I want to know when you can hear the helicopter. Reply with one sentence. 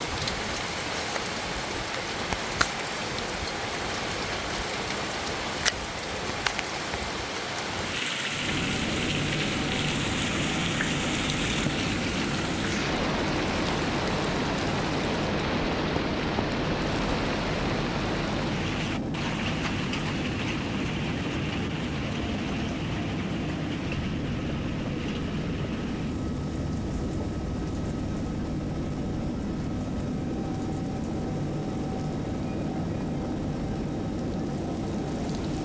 You can hear the helicopter from 8.3 to 35.5 s.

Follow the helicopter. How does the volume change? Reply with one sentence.
The volume of the helicopter stays about the same.